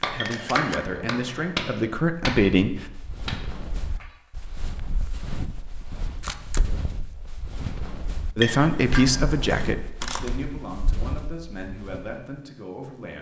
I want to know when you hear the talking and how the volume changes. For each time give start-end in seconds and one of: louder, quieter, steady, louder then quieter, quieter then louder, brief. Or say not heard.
0.0-2.9 brief
8.3-13.1 quieter.